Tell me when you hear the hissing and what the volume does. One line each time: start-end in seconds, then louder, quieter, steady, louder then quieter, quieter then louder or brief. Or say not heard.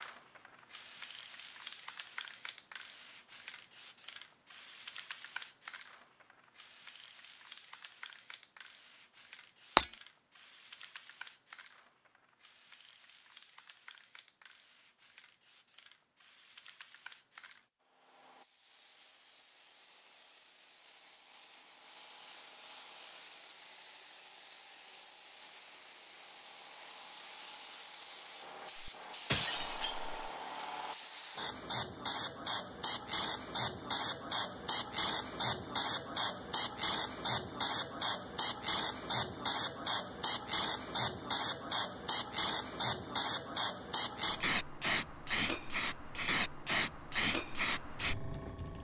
0.0-48.7 quieter then louder.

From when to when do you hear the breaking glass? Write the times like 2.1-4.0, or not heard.
28.8-30.1.